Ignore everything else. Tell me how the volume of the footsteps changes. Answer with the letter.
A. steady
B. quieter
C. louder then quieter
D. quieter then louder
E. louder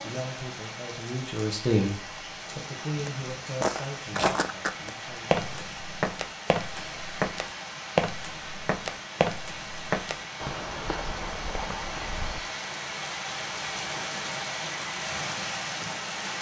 B.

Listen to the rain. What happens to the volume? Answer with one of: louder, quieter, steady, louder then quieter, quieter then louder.
louder.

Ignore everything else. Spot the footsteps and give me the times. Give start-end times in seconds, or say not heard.
3.0-12.4.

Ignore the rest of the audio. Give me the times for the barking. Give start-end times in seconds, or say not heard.
not heard.